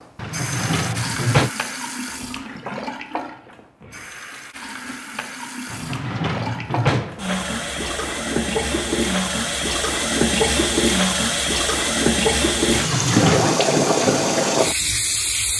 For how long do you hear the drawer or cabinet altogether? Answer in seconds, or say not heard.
4 s.